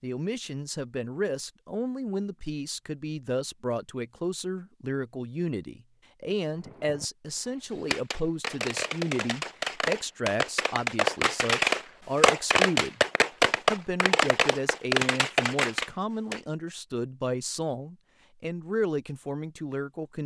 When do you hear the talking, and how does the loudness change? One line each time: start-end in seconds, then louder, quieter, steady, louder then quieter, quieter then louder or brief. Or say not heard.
0.0-13.0 steady
13.7-20.2 steady.